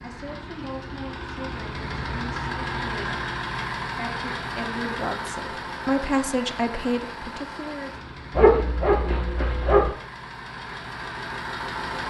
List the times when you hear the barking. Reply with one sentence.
You can hear the barking from 8.3 to 9.9 s.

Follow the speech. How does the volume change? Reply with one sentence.
The loudness of the speech goes up.